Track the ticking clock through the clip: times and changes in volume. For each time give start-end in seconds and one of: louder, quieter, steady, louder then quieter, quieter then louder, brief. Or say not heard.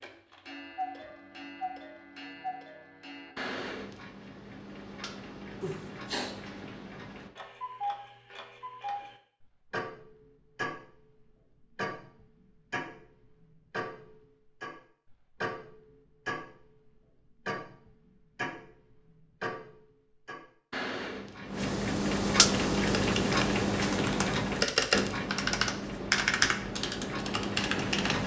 0.0-28.2 louder.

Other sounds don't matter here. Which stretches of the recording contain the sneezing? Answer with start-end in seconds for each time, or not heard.
5.6-6.4.